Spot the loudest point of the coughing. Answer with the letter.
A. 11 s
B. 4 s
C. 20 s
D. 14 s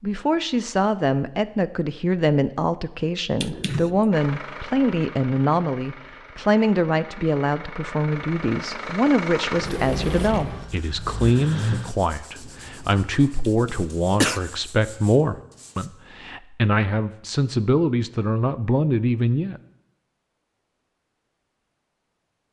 D.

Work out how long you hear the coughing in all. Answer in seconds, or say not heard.
2 s.